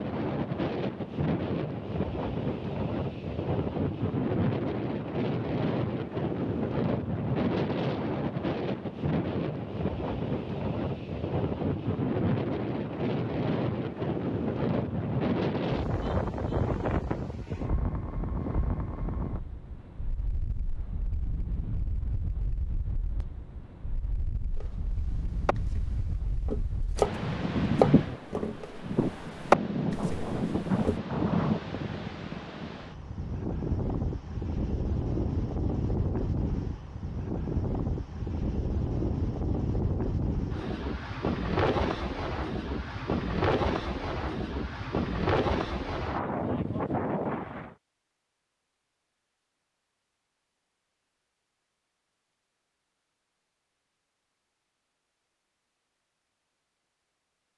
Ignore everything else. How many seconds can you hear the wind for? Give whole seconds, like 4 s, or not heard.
48 s.